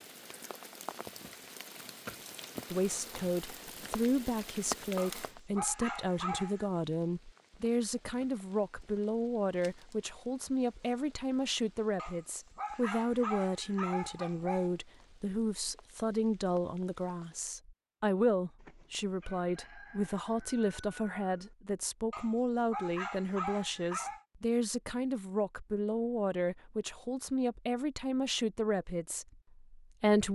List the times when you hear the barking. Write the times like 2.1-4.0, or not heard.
5.0-6.7, 11.9-14.8, 22.1-24.2.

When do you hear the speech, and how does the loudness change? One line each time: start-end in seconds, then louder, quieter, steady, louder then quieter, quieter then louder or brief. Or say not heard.
2.7-30.3 steady.